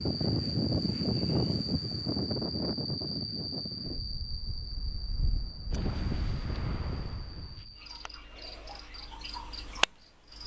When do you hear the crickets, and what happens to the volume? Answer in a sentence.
The crickets can be heard from 0.0 to 10.4 s, getting quieter then louder.